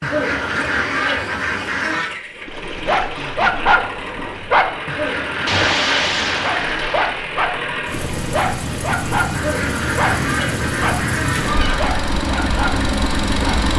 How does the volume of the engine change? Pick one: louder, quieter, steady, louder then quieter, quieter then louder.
louder.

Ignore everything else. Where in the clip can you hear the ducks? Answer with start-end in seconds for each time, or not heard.
0.0-2.1, 4.8-6.9, 9.3-11.9.